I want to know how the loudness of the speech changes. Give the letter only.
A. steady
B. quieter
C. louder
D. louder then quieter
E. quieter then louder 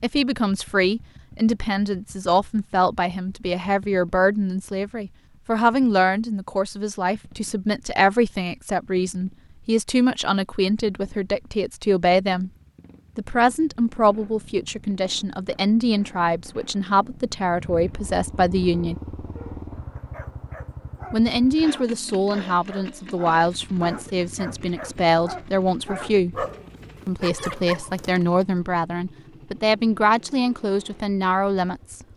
A.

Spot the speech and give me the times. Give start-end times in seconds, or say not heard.
0.0-12.5, 13.2-18.9, 21.1-26.4, 27.1-32.0.